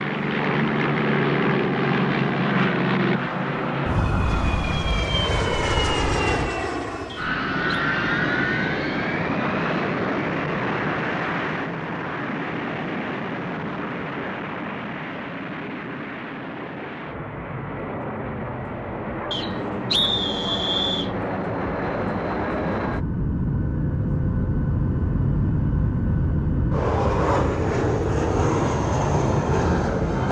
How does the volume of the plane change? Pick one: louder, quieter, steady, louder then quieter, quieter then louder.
quieter then louder.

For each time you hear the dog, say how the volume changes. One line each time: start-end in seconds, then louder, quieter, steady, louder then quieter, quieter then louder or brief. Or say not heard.
not heard.